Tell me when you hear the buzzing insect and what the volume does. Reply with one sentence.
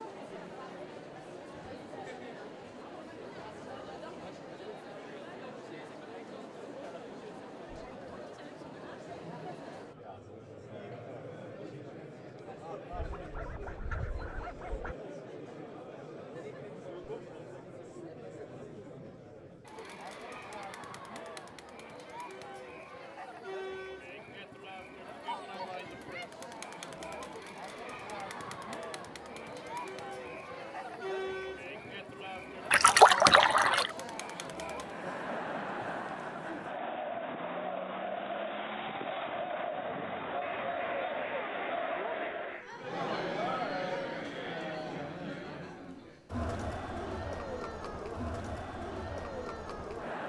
The buzzing insect can't be heard in this clip.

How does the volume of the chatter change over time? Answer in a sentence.
The volume of the chatter goes up.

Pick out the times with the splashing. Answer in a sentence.
You can hear the splashing from 32.7 to 33.9 s.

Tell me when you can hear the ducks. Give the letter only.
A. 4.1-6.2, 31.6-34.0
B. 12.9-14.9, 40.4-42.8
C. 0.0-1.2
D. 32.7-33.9
B.